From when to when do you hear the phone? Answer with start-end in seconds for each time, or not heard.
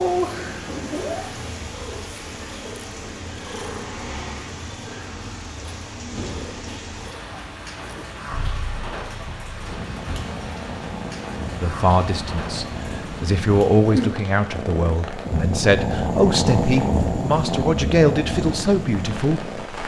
not heard.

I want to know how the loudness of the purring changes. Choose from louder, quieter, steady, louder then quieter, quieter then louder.
quieter then louder.